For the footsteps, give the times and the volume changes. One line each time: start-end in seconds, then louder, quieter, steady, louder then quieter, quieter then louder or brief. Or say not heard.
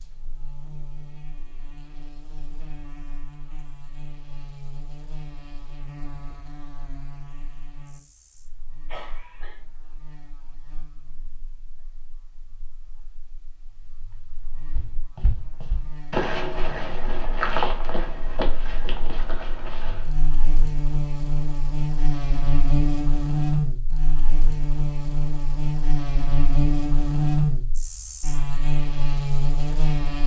14.7-20.1 louder then quieter.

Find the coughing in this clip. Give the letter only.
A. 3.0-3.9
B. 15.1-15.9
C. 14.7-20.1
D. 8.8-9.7
D.